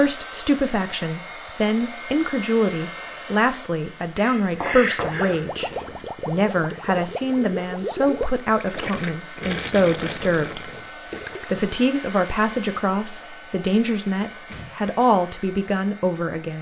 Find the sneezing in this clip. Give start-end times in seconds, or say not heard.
4.2-5.6, 14.4-14.9.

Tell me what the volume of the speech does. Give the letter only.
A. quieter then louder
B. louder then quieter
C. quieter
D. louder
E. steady
E.